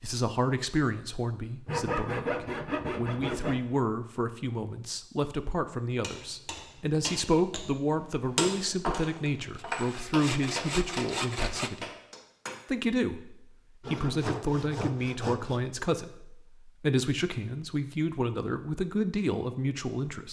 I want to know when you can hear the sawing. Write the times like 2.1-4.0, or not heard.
1.6-3.6, 9.4-11.7, 13.8-15.6.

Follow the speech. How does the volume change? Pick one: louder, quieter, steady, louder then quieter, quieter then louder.
steady.